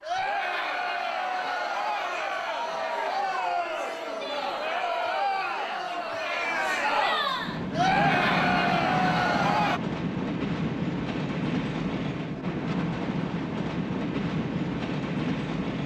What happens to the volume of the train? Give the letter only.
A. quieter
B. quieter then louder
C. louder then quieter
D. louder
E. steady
E.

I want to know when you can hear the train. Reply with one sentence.
You can hear the train from 7.3 to 15.8 s.